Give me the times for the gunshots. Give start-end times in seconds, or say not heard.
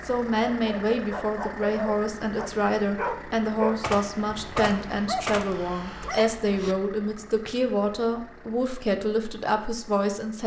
3.8-5.7.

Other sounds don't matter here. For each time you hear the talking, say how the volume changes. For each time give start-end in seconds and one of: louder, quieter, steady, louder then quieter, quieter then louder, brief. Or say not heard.
0.0-10.4 steady.